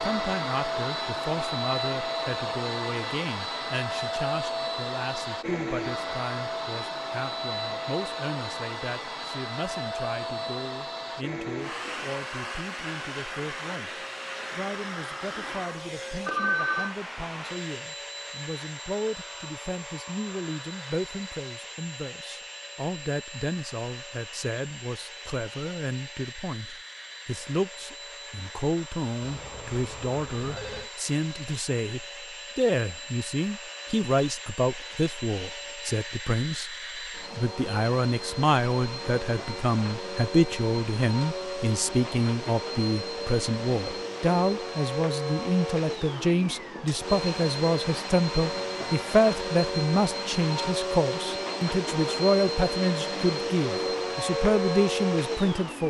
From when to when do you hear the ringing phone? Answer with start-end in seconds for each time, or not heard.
16.2-16.9, 29.2-30.9.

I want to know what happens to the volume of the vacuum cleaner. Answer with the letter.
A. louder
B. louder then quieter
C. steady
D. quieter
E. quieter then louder
E.